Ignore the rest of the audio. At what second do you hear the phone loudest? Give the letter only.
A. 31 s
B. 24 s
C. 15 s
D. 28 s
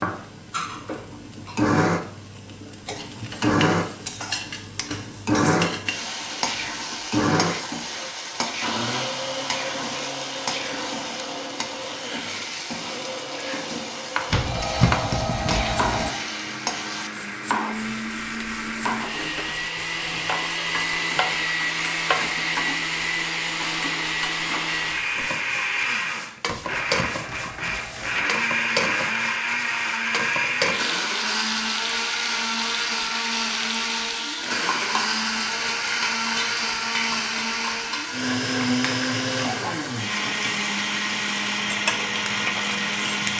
C.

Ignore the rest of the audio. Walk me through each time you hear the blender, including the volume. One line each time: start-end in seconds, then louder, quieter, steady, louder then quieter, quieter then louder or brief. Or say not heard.
0.0-43.3 quieter then louder.